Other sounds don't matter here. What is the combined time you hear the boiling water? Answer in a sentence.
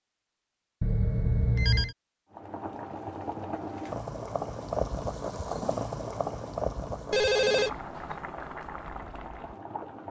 The boiling water can be heard for 8 seconds in total.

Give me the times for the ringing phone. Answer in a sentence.
The ringing phone can be heard from 0.8 to 1.9 s and from 7.1 to 8.2 s.